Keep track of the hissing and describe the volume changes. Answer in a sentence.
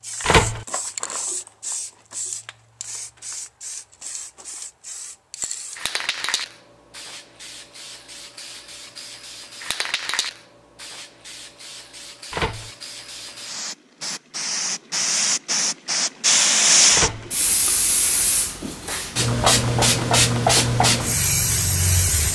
The loudness of the hissing goes up.